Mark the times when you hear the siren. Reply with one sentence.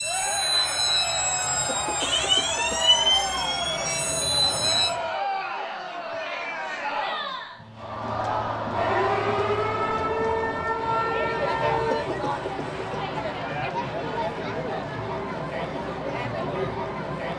The siren can be heard from 0.0 to 5.0 s and from 8.7 to 12.1 s.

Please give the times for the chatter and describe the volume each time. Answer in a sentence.
You can hear the chatter from 0.0 to 17.3 s, at a steady volume.